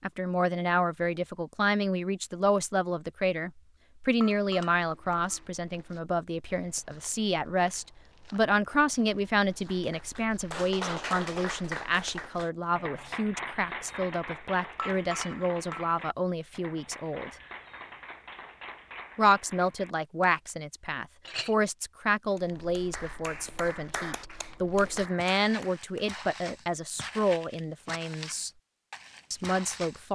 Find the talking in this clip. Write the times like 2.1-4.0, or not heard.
0.0-17.3, 19.1-28.5, 29.3-30.1.